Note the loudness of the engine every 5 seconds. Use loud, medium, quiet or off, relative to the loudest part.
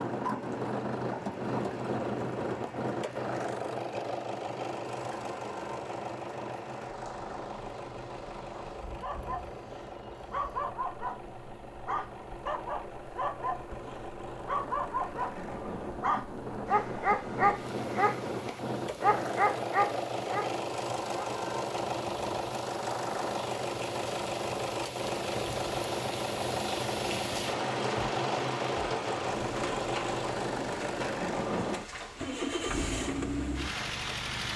loud, medium, medium, loud, loud, loud, loud.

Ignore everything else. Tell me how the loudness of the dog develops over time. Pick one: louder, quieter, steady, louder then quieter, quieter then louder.
louder.